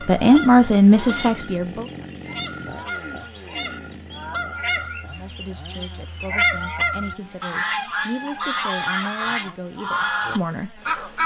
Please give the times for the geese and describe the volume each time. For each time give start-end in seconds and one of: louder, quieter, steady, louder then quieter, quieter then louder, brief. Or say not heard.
0.0-11.2 louder.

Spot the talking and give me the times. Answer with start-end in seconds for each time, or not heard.
0.0-1.9, 5.1-10.7.